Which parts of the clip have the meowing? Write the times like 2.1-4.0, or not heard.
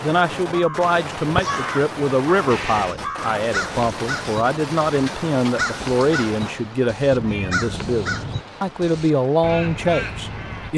2.5-3.2, 7.1-8.4.